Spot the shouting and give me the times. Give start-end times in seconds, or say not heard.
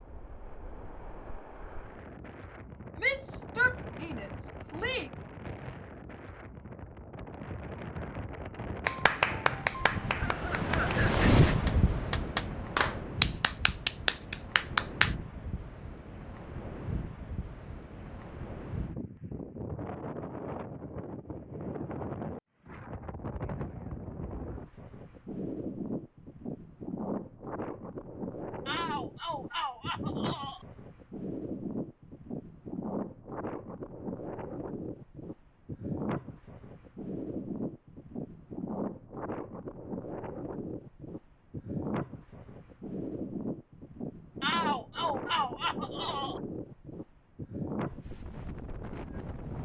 3.0-5.1, 28.6-30.6, 44.4-46.4.